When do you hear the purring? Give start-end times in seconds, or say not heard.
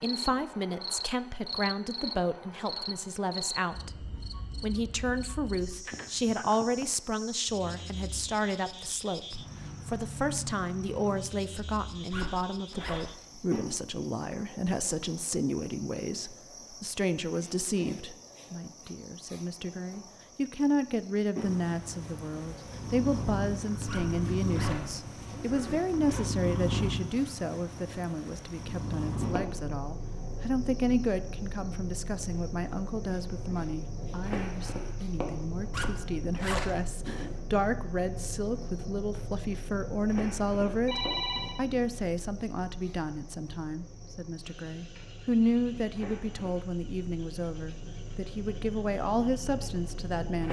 21.4-50.4.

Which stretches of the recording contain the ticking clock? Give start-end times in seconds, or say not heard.
not heard.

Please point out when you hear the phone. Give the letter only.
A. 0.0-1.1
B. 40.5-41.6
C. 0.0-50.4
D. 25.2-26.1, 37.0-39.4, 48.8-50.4
B.